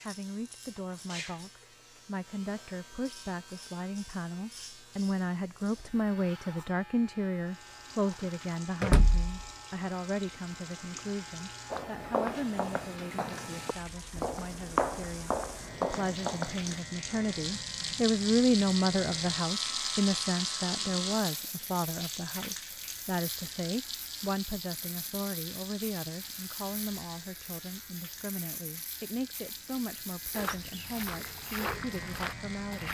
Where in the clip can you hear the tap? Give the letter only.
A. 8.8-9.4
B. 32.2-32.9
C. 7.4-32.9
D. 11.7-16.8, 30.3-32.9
C.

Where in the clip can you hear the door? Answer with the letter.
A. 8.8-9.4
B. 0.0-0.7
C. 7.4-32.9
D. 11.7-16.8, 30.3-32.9
A.